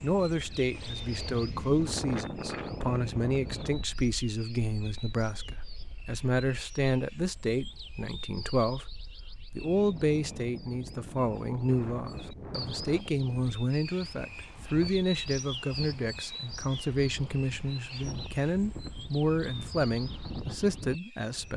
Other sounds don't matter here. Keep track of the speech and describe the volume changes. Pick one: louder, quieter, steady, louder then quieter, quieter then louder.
steady.